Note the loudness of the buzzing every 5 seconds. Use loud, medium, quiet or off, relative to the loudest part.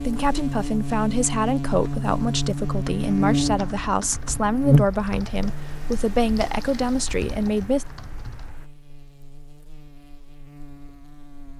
loud, quiet, quiet.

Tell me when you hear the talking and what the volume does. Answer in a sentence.
You can hear the talking from 0.0 to 7.8 s, at a steady volume.